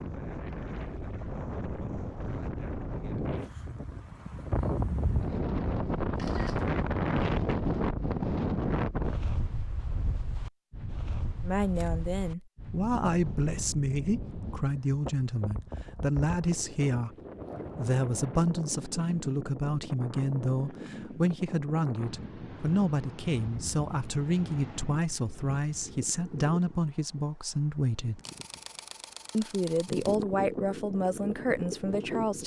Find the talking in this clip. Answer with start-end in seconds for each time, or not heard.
11.4-17.1, 17.8-28.2, 29.3-32.4.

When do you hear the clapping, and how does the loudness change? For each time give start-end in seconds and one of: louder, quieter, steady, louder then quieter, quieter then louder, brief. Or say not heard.
not heard.